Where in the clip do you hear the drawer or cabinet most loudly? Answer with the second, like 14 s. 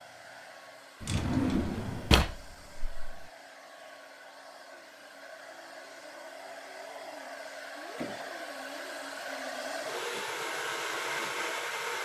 2 s.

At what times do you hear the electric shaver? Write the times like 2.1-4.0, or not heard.
not heard.